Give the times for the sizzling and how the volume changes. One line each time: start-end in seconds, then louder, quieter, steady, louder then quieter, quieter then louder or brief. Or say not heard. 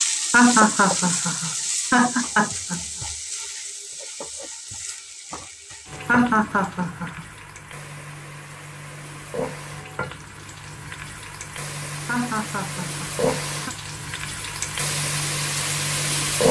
0.0-16.4 quieter then louder.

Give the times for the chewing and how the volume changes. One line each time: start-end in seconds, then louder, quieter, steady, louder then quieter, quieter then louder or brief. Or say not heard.
not heard.